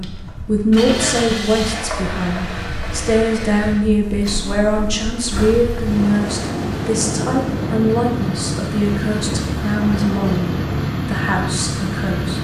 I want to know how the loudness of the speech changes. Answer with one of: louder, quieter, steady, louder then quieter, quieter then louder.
steady.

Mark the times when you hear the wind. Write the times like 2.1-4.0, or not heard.
0.0-12.3.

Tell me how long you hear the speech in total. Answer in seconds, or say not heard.
12 s.